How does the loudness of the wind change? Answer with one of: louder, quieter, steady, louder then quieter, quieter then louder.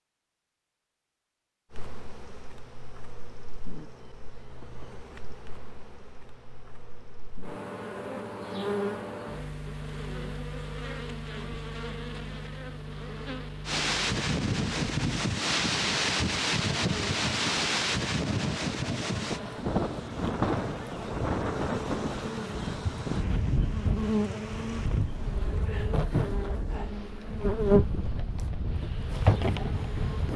quieter.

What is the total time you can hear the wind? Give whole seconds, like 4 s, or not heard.
17 s.